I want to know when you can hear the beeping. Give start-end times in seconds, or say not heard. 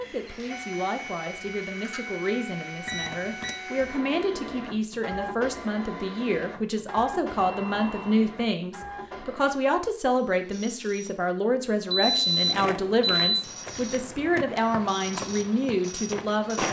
2.9-3.6, 7.3-8.2, 11.9-13.4.